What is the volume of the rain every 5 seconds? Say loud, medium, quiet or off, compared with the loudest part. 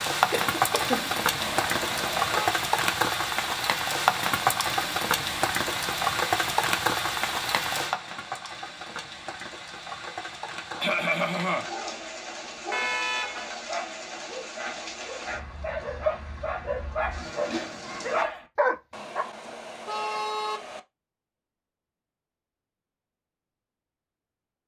loud, loud, quiet, quiet, off.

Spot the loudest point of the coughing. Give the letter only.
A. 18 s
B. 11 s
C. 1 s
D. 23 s
B.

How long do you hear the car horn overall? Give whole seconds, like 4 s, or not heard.
4 s.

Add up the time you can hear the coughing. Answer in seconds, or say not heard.
2 s.